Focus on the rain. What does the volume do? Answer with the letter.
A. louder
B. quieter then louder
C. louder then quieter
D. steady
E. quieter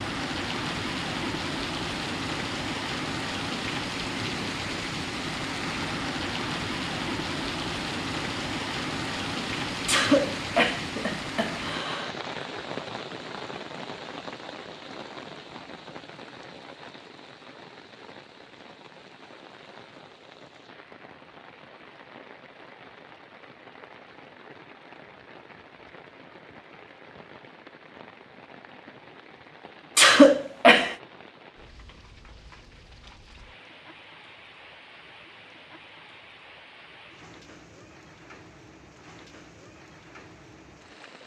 E.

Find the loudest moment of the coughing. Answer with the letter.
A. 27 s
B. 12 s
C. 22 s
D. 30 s
D.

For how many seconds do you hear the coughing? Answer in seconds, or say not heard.
3 s.